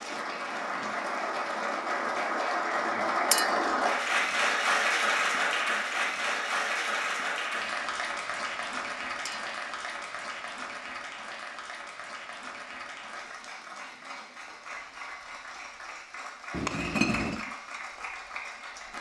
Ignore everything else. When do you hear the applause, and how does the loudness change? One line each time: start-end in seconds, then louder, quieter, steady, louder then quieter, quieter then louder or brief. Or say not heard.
0.0-18.9 quieter.